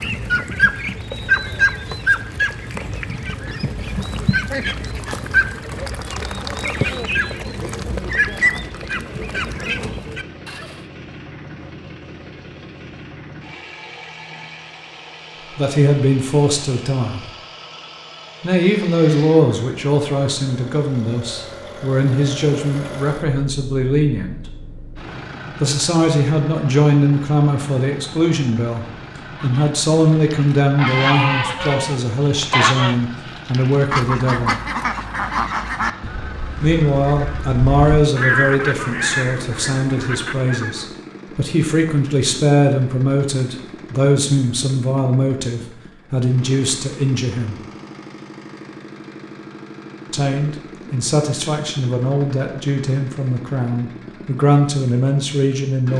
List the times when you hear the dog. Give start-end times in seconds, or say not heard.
not heard.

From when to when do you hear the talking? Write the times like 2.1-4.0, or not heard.
15.6-17.3, 18.4-24.4, 25.6-34.6, 36.6-47.6, 50.1-55.9.